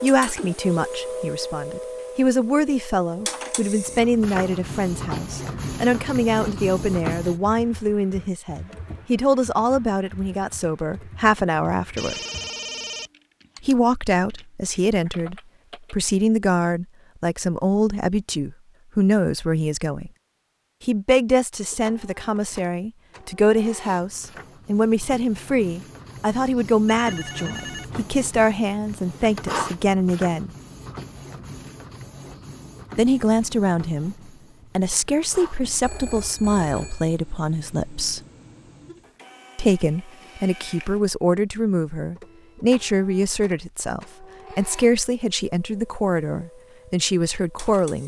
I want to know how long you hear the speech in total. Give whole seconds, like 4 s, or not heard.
42 s.